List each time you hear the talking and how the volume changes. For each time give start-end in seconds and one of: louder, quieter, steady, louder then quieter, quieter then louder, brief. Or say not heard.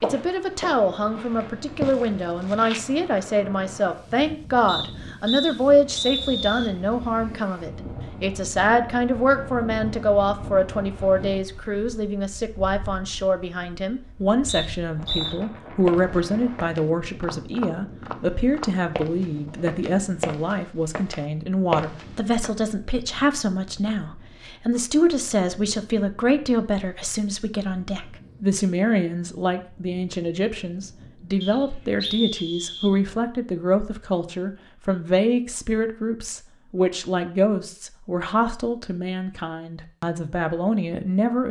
0.0-41.4 steady.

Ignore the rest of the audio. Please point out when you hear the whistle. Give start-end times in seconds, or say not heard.
4.7-6.7, 14.4-15.3, 31.4-32.9.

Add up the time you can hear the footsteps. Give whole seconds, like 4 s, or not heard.
11 s.